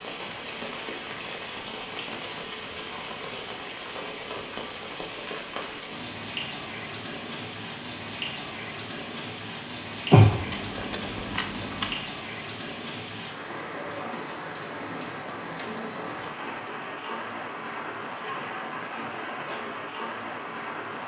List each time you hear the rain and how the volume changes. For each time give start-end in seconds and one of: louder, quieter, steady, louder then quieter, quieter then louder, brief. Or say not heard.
0.0-21.0 steady.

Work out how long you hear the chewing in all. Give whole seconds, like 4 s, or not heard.
2 s.